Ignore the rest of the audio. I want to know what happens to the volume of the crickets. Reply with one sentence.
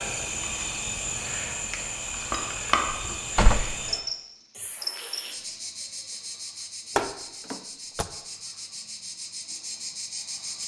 The loudness of the crickets goes down.